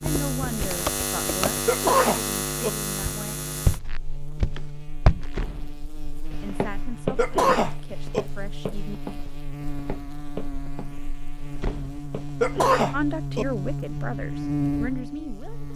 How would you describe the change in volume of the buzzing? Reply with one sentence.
The volume of the buzzing goes down, then up.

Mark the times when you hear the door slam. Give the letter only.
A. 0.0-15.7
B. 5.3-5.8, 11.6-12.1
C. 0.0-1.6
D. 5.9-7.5
B.